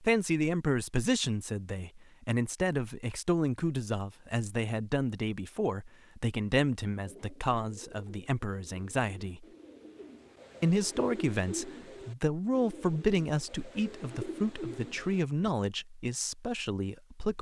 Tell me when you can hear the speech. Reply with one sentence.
You can hear the speech from 0.0 to 9.4 s and from 10.6 to 17.3 s.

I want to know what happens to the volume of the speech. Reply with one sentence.
The loudness of the speech stays about the same.